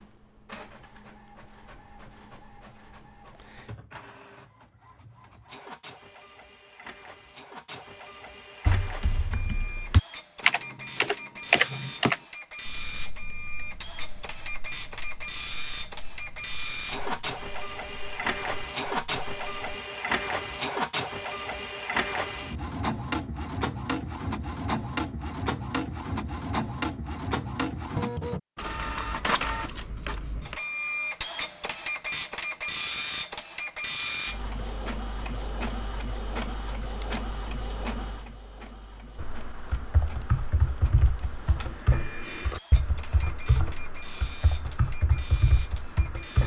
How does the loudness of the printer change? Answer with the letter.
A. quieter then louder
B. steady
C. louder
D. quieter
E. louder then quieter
E.